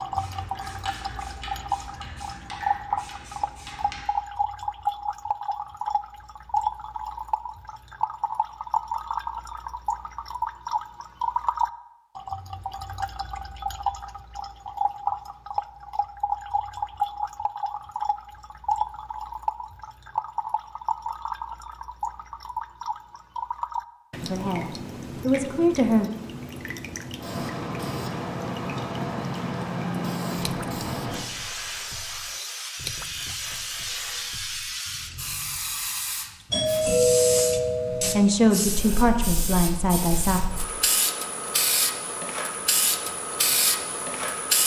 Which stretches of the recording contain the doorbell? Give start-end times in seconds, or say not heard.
36.5-38.2.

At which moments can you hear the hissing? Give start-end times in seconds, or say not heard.
0.0-4.0, 27.1-44.6.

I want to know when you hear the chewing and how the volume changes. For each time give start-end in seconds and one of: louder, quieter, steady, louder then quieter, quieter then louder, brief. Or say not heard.
not heard.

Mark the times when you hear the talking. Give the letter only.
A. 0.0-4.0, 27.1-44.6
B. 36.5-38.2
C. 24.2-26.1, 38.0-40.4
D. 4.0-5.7
C.